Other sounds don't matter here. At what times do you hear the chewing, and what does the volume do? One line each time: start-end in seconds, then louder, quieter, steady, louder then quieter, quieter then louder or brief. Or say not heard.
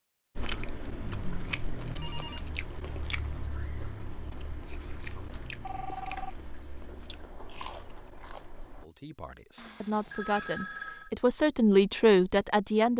0.3-8.9 quieter.